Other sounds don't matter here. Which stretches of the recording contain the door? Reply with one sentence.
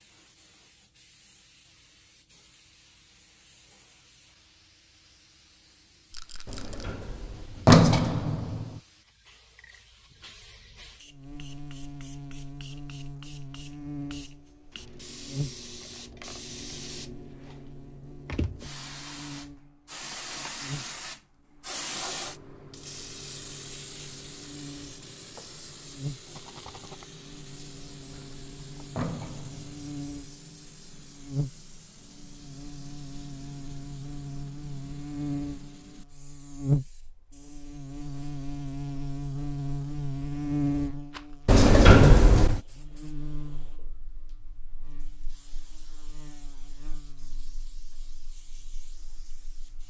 You can hear the door from 6.5 to 8.7 s, from 28.0 to 29.9 s and from 41.5 to 42.6 s.